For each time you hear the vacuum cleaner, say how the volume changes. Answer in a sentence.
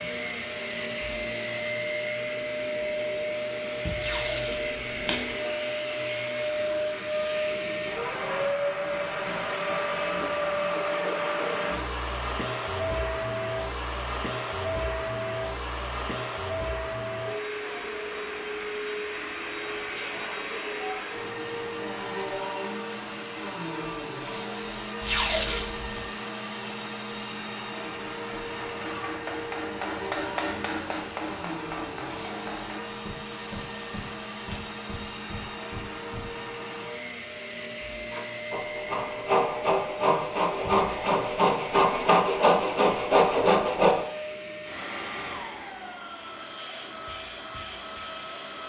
You can hear the vacuum cleaner from 0.0 to 48.6 s, getting quieter.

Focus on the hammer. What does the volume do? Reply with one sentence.
The volume of the hammer goes down.